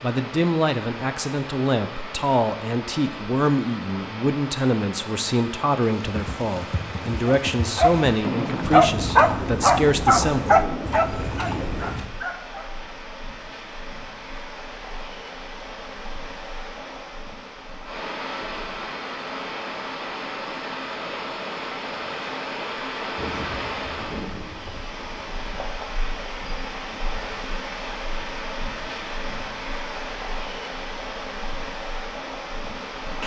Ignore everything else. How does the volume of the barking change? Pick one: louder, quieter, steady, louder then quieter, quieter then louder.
quieter.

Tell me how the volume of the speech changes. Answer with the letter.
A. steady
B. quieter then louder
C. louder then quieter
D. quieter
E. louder
A.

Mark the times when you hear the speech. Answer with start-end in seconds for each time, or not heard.
0.0-10.6.